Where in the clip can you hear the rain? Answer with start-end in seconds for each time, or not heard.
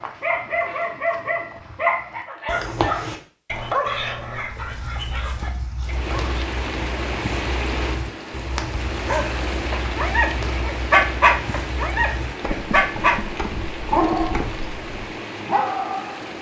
5.8-16.3.